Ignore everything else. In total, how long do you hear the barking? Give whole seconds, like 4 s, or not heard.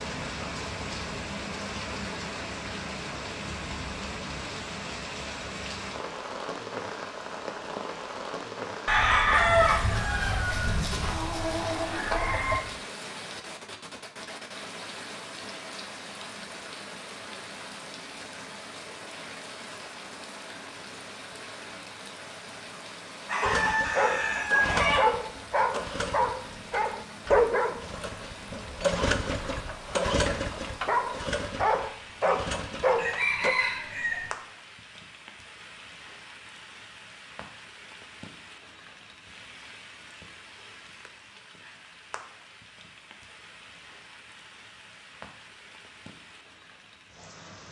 10 s.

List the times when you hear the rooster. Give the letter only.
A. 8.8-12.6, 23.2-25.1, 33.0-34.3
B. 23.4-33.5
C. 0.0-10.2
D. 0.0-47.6
A.